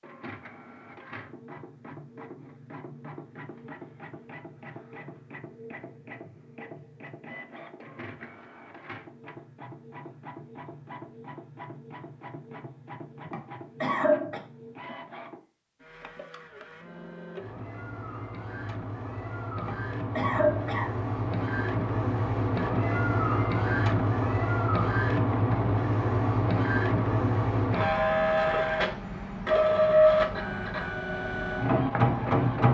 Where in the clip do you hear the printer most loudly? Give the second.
30 s.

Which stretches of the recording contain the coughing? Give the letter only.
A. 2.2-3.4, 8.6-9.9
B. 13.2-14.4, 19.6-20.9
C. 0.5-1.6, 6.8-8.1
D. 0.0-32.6
B.